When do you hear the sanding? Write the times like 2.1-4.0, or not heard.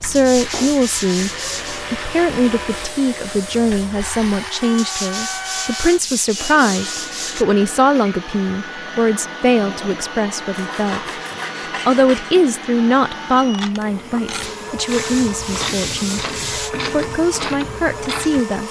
0.1-1.9, 4.8-7.5, 10.5-12.3, 14.4-16.7.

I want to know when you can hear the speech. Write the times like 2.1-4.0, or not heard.
0.0-1.3, 1.9-11.1, 11.8-16.2, 16.9-18.6.